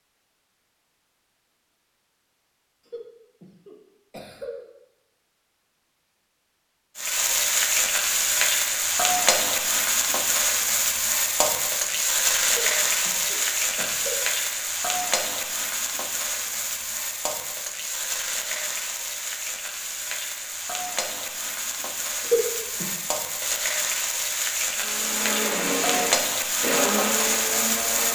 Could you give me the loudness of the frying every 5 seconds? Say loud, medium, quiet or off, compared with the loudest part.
off, loud, loud, medium, medium, loud.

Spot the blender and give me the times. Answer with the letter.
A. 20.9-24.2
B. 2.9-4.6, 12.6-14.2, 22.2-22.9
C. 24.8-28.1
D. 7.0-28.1
C.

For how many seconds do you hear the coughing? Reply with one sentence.
You can hear the coughing for 4 seconds altogether.